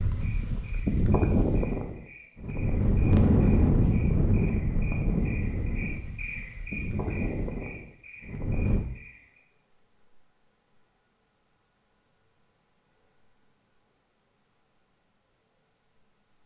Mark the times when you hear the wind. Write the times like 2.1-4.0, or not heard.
0.0-8.8.